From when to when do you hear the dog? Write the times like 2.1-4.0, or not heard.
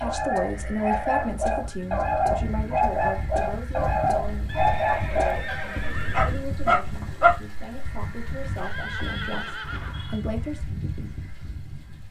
0.0-7.3.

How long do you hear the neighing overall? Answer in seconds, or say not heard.
5 s.